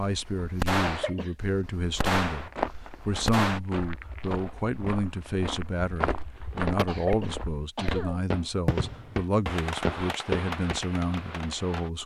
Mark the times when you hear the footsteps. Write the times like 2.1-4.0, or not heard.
1.8-10.8.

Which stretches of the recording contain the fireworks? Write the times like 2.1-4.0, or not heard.
0.0-3.6, 6.8-11.9.